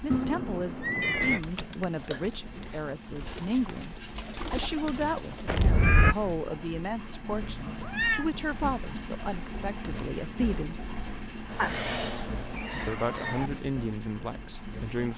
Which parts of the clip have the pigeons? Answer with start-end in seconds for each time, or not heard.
2.1-5.9.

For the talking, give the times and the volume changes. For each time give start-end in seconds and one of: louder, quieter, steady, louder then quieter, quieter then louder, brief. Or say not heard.
0.0-10.8 steady
12.8-15.1 brief.